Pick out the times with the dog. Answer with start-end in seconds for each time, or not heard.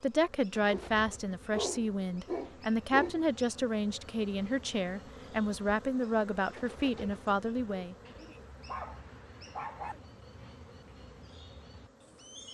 0.7-3.1, 8.0-9.9.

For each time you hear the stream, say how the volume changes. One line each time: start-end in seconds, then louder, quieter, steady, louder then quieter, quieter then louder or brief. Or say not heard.
not heard.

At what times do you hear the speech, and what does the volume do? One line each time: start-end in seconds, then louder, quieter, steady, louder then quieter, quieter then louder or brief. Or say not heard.
0.0-8.0 steady.